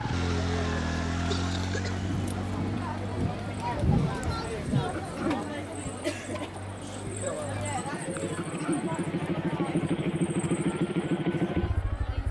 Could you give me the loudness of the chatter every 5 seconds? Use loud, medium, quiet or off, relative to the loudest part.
loud, loud, medium.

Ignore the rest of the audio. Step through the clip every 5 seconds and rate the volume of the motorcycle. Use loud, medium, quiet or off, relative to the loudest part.
medium, medium, loud.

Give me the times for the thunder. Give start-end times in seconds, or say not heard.
2.0-5.3.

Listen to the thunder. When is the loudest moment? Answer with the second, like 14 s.
4 s.